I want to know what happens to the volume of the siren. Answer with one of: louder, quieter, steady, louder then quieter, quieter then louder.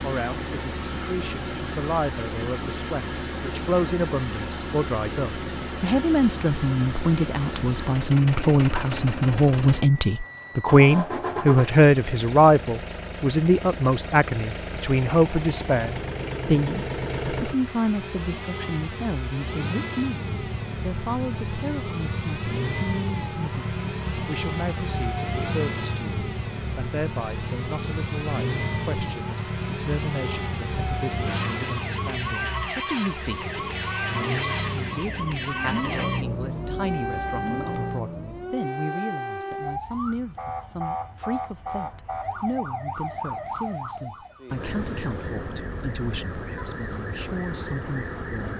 steady.